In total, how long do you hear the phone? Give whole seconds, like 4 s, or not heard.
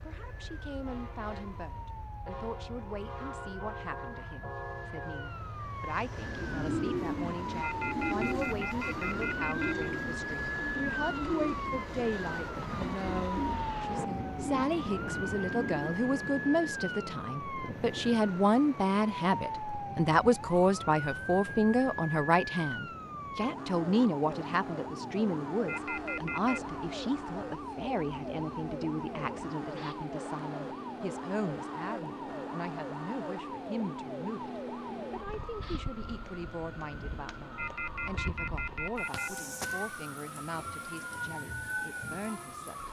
5 s.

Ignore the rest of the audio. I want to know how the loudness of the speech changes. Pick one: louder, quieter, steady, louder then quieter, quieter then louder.
louder then quieter.